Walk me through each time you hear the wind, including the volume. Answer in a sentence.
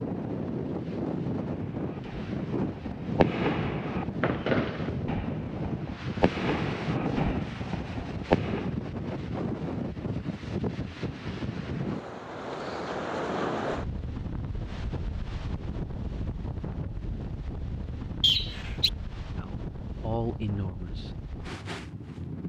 You can hear the wind from 0.0 to 22.4 s, getting quieter.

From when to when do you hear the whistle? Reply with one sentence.
The whistle can be heard from 18.2 to 18.9 s.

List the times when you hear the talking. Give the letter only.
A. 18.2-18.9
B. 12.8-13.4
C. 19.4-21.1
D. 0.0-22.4
C.